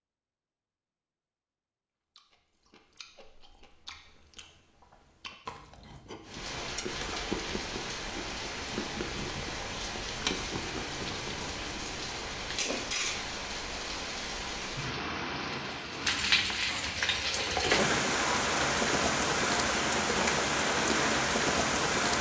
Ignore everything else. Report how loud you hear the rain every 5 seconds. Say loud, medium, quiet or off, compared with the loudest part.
off, medium, medium, loud, loud.